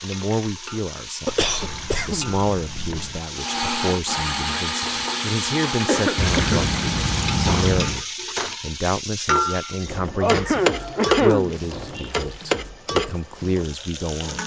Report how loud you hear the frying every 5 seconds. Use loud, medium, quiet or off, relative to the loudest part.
medium, loud, loud.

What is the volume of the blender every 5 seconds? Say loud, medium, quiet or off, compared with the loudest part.
loud, loud, off.